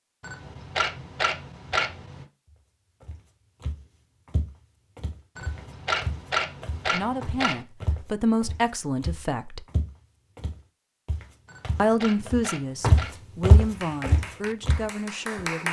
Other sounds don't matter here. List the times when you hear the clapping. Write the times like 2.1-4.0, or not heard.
13.7-15.6.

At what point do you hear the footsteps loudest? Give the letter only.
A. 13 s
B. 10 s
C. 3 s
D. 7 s
A.